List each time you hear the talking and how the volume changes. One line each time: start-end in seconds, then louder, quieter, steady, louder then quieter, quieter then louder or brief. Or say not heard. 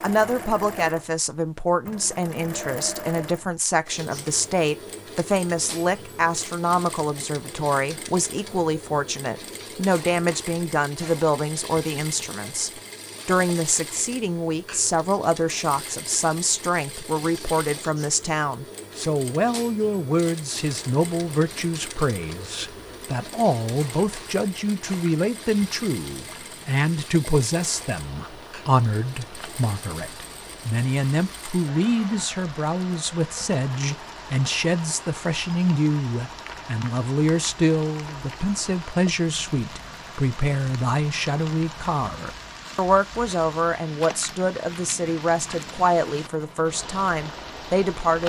0.0-48.2 steady.